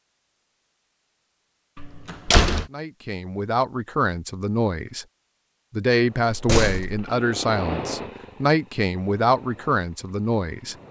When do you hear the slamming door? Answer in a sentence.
You can hear the slamming door from 1.8 to 2.6 s and from 6.3 to 7.0 s.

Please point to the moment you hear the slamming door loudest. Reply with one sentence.
The loudest moment of the slamming door is at 2 seconds.